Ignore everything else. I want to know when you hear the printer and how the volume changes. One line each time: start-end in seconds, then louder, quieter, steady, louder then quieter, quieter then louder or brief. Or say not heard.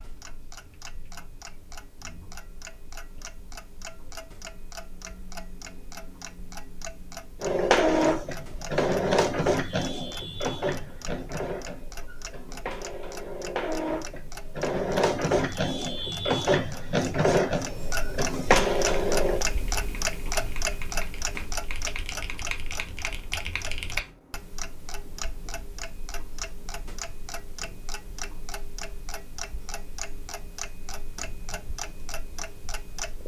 7.4-19.4 quieter then louder.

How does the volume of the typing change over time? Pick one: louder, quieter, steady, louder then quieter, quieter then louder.
louder.